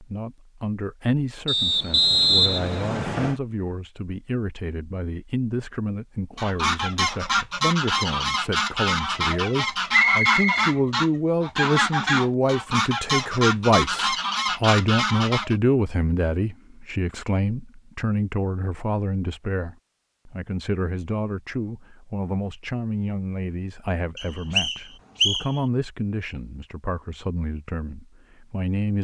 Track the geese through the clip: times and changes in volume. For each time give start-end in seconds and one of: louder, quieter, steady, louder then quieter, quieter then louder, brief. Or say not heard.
6.3-15.6 steady.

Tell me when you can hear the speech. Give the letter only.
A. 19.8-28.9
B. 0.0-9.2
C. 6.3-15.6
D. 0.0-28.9
D.